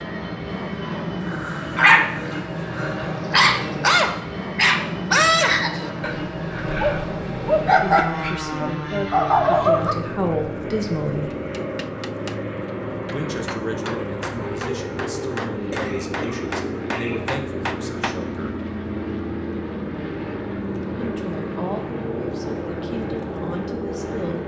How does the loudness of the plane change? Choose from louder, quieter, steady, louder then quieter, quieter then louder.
steady.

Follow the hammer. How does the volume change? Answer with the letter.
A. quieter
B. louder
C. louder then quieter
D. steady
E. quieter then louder
B.